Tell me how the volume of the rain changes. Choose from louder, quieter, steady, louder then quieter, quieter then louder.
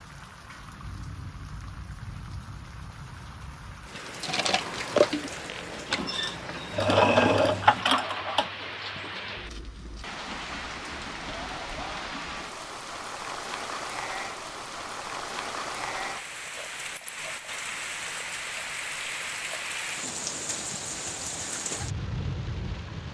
louder.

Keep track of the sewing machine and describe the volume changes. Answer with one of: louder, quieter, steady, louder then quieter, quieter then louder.
quieter then louder.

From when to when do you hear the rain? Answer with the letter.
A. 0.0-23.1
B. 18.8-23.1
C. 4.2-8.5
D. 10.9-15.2
A.